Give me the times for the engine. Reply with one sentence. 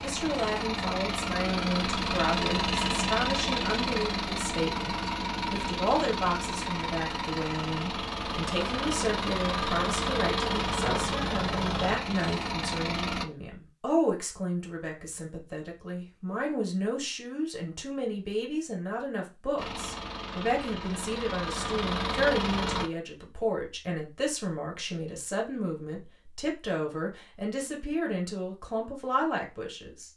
You can hear the engine from 0.0 to 13.3 s and from 19.6 to 22.9 s.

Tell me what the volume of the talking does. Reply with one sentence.
The volume of the talking stays about the same.